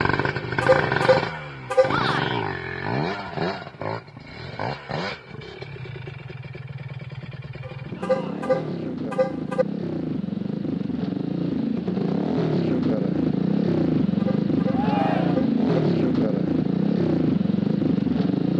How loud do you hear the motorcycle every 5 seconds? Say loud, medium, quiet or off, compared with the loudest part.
medium, medium, loud, loud.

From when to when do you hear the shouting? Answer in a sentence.
The shouting can be heard from 1.9 to 2.5 s, from 8.0 to 8.6 s and from 14.7 to 15.4 s.